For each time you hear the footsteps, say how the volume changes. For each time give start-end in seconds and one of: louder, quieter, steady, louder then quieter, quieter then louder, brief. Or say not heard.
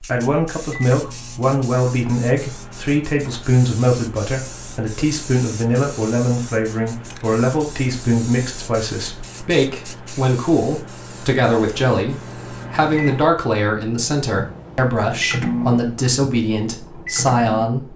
not heard.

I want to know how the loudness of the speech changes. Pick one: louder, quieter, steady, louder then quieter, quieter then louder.
steady.